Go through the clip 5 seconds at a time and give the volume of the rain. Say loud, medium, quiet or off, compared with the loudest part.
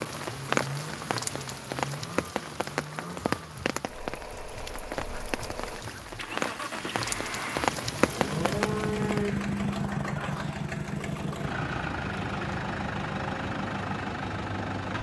loud, loud, off.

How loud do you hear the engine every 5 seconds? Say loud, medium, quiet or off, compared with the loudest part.
medium, loud, loud.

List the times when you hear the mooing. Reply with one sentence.
The mooing can be heard from 7.8 to 9.3 s.